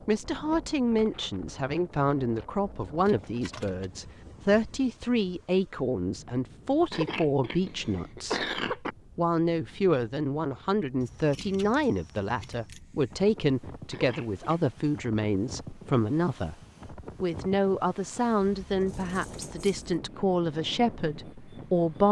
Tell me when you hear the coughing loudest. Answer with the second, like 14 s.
8 s.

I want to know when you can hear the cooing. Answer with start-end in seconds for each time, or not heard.
not heard.